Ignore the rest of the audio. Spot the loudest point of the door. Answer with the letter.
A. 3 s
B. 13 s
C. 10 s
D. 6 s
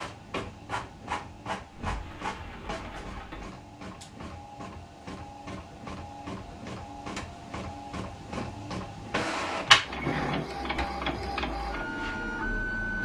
C.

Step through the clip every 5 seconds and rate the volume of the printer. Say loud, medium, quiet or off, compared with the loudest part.
medium, loud, loud.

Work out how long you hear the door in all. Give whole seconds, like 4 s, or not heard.
3 s.